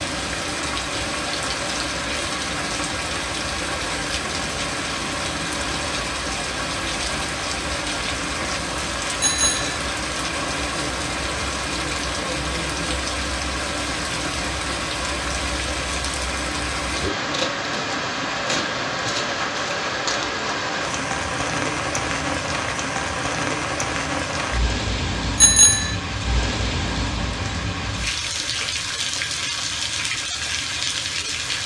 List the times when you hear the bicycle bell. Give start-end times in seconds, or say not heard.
9.2-9.8, 25.4-25.9.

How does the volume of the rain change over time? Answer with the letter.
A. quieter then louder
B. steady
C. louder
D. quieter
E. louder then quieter
B.